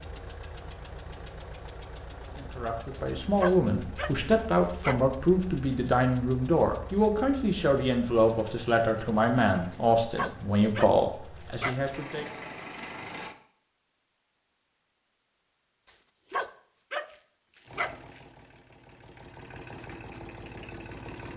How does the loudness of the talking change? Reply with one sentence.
The volume of the talking stays about the same.